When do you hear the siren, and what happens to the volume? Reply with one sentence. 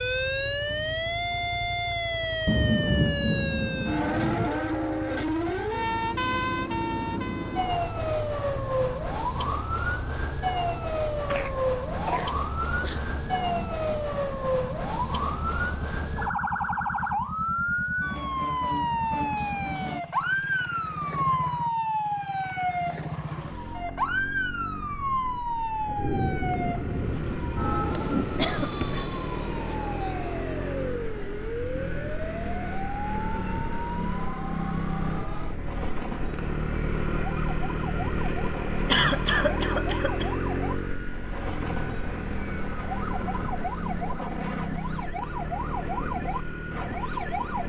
You can hear the siren from 0.0 to 47.6 s, getting quieter.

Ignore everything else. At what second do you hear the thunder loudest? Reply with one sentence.
The volume of the thunder peaks at 3 seconds.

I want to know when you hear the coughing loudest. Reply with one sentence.
The loudest moment of the coughing is at 39 seconds.